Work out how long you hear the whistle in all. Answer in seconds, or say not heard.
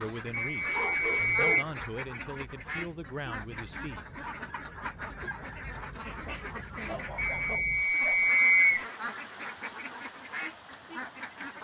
3 s.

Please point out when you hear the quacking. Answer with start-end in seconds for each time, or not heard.
0.0-11.5.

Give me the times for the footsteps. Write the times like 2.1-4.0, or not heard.
not heard.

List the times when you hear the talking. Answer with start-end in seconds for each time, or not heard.
0.0-4.0.